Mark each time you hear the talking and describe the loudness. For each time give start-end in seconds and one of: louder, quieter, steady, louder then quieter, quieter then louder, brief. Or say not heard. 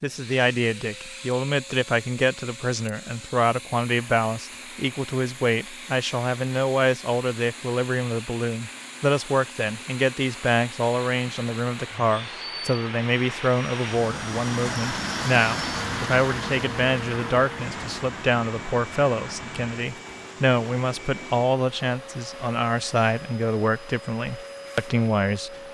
0.0-25.7 steady.